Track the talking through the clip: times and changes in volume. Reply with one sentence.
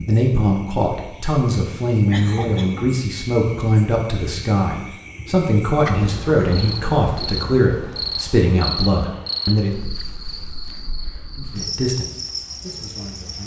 You can hear the talking from 0.0 to 9.8 s, at a steady volume; and briefly from 11.3 to 13.4 s.